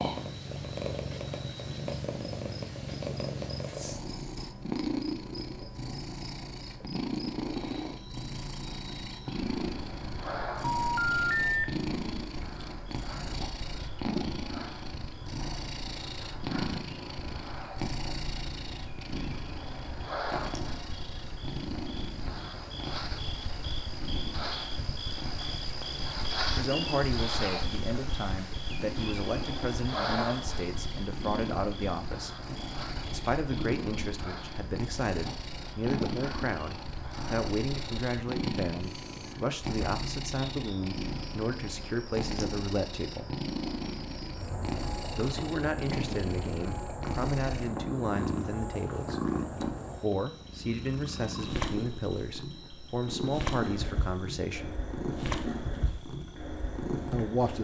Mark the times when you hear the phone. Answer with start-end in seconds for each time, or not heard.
10.6-11.7.